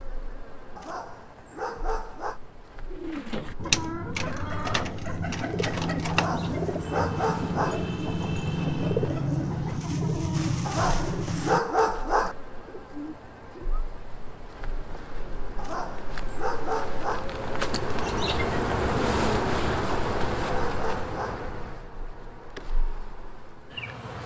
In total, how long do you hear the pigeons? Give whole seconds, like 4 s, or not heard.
11 s.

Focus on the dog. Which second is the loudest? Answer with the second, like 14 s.
12 s.